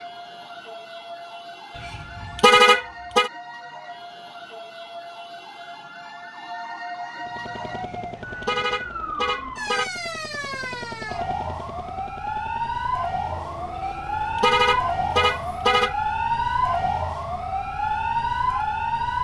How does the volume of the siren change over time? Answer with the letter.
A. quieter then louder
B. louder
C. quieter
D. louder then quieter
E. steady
B.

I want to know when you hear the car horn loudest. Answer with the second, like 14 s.
3 s.